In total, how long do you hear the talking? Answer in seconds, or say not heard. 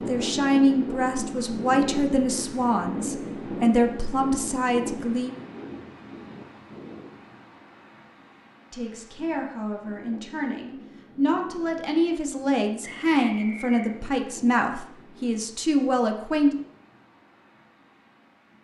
13 s.